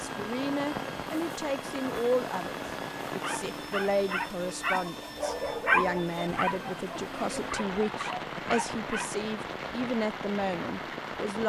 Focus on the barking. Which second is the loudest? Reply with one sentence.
The loudest moment of the barking is at 6 seconds.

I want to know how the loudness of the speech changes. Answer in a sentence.
The loudness of the speech stays about the same.